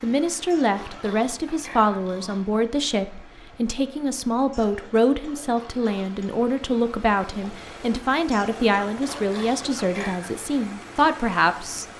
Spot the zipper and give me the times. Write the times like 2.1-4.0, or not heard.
not heard.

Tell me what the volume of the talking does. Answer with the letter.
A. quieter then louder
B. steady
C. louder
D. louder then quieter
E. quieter
B.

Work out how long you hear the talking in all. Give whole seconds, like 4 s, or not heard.
12 s.